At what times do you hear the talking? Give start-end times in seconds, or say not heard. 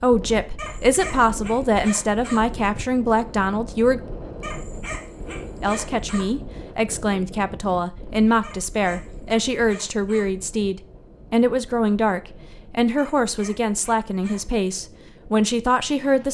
0.0-4.0, 5.6-16.2.